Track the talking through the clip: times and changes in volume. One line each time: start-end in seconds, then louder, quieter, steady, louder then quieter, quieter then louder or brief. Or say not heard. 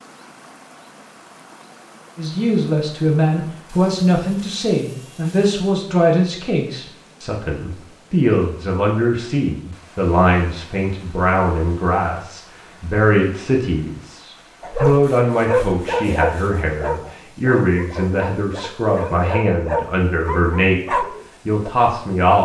2.1-22.4 steady.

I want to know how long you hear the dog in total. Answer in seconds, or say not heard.
7 s.